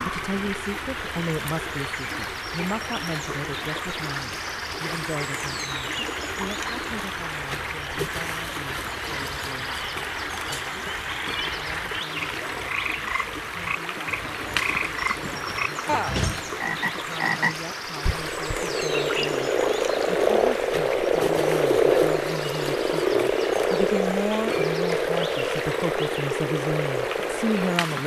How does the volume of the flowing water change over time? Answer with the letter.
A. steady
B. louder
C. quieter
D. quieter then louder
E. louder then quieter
A.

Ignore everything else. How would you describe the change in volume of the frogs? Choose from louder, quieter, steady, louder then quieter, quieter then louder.
louder.